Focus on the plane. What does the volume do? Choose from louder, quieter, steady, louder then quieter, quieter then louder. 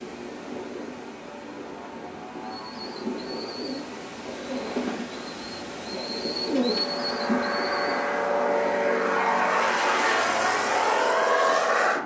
louder.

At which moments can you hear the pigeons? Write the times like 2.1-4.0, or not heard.
2.6-8.1.